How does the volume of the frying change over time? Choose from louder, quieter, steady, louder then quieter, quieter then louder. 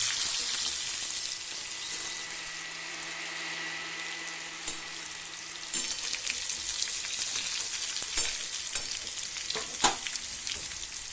quieter then louder.